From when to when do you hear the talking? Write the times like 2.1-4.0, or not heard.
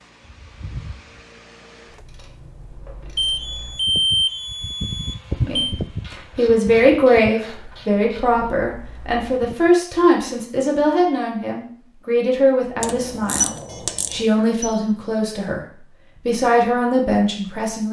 5.3-13.5, 14.1-17.8.